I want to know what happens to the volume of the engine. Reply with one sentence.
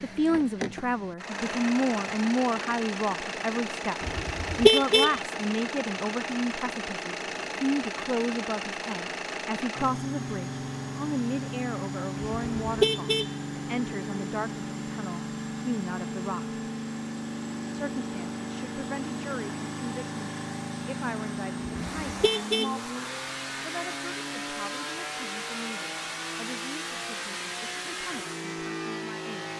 The loudness of the engine stays about the same.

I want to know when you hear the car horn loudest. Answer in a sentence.
The loudest moment of the car horn is at 5 seconds.